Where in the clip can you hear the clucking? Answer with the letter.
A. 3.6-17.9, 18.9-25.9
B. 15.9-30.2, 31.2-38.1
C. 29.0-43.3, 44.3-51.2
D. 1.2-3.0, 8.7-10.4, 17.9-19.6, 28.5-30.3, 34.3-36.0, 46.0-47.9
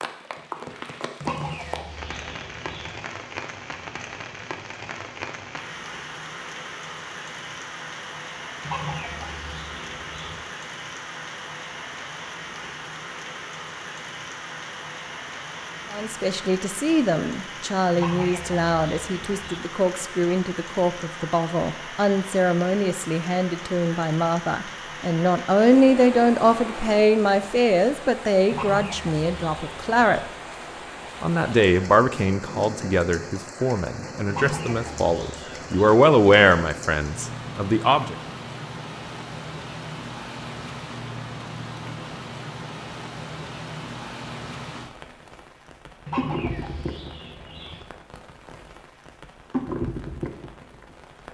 D.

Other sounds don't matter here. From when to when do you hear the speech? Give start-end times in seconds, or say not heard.
15.9-30.2, 31.2-38.1.